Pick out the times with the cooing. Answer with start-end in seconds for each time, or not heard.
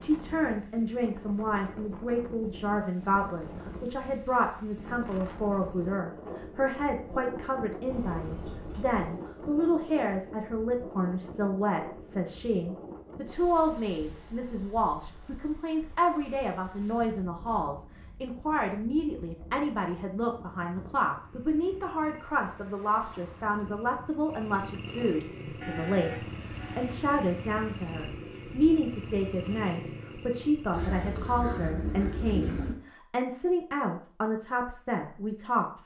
8.2-9.7, 30.7-32.8.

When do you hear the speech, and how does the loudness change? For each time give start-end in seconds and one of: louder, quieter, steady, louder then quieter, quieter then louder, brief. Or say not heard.
0.0-35.8 steady.